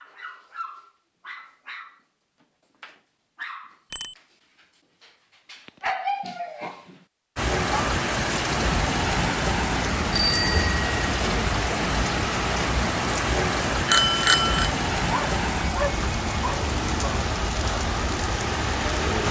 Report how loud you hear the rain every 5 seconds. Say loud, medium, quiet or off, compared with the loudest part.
off, loud, loud, loud.